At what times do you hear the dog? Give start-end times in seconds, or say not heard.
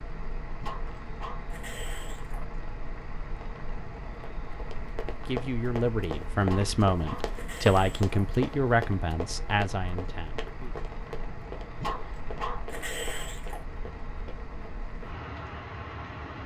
0.6-2.5, 6.4-8.1, 11.8-13.6.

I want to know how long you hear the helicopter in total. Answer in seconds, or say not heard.
not heard.